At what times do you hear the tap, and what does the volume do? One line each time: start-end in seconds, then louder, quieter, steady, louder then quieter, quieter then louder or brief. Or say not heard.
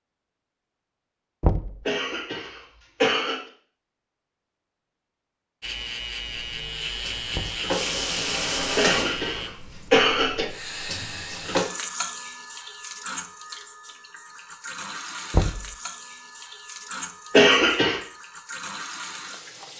6.3-19.7 quieter.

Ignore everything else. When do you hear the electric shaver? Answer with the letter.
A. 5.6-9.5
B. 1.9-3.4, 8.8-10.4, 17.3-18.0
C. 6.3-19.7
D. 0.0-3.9
A.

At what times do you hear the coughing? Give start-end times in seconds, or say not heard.
1.9-3.4, 8.8-10.4, 17.3-18.0.